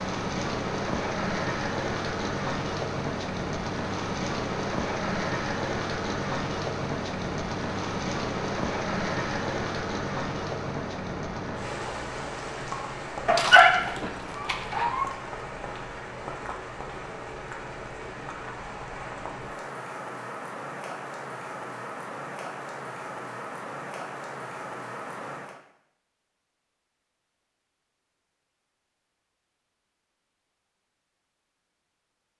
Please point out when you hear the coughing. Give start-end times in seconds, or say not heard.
not heard.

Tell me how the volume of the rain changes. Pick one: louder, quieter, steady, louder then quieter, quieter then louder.
quieter.